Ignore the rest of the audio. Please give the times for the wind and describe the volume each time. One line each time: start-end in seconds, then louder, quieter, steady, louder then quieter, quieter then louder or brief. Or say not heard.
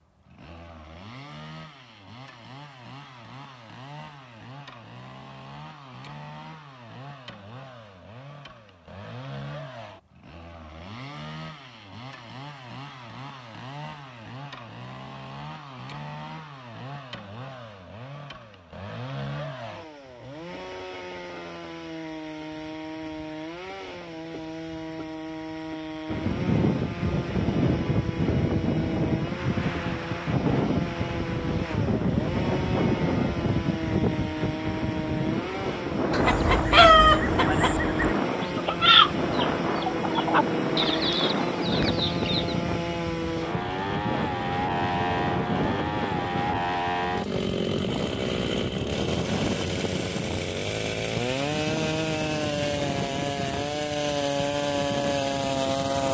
26.1-56.0 quieter.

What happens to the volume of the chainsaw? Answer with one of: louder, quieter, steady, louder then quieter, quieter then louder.
louder.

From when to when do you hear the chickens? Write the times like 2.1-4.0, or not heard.
36.1-42.5.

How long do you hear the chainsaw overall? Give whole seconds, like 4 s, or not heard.
56 s.